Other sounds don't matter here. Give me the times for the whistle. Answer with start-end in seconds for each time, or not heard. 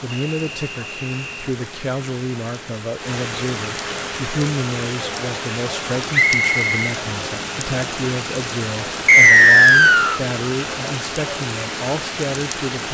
0.1-1.6, 6.1-6.8, 9.1-10.2.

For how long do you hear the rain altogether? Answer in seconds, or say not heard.
13 s.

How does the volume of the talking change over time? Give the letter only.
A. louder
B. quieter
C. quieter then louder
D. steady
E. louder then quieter
D.